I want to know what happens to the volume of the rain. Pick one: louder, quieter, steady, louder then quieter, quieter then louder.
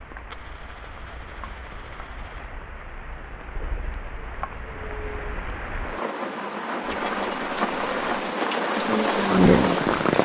louder.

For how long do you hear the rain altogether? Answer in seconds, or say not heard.
10 s.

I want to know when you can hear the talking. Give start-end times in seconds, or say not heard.
8.7-10.2.